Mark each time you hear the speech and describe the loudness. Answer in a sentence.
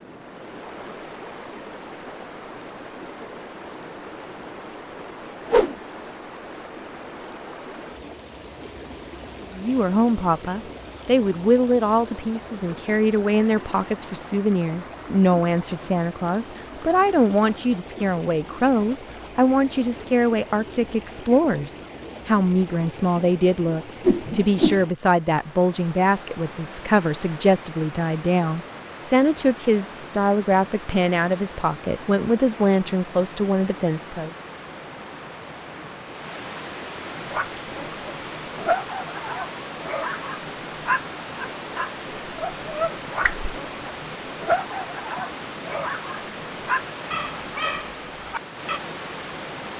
The speech can be heard from 9.5 to 34.4 s, at a steady volume.